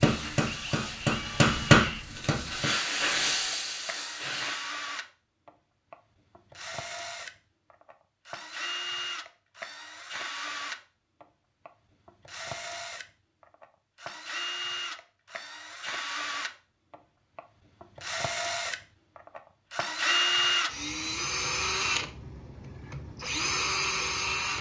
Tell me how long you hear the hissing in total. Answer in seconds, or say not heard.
5 s.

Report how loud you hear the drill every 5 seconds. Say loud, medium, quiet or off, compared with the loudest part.
medium, medium, medium, medium, loud.